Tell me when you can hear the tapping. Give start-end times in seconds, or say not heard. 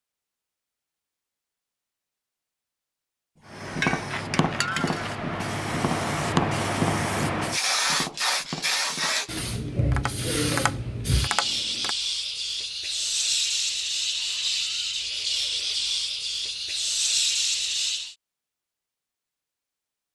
3.8-11.9.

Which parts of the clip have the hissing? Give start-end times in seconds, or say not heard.
3.5-18.1.